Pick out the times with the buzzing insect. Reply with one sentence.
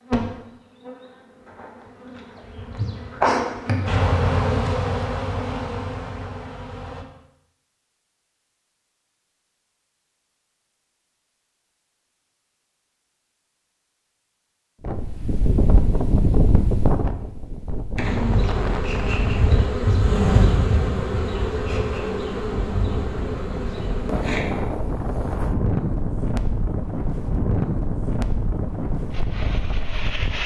The buzzing insect can be heard from 0.0 to 7.0 s and from 17.9 to 24.4 s.